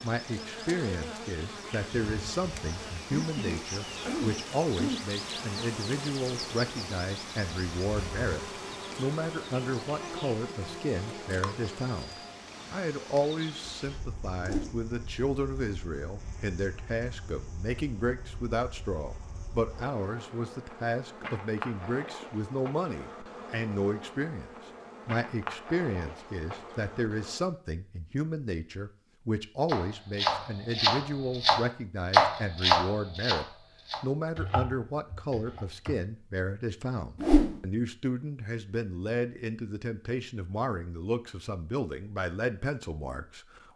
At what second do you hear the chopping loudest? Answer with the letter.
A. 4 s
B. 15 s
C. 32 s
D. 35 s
C.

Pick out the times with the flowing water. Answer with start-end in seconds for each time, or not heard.
not heard.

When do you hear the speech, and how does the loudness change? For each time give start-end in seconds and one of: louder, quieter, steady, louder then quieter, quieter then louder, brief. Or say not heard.
0.0-43.6 steady.